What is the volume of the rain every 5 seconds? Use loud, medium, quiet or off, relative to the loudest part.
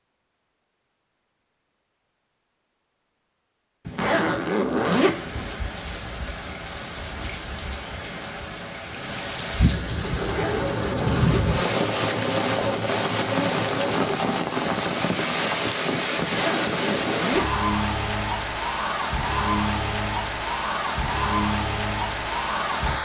off, medium, loud, loud, loud.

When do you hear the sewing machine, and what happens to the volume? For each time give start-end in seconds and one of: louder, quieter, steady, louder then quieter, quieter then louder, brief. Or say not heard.
9.9-14.2 steady.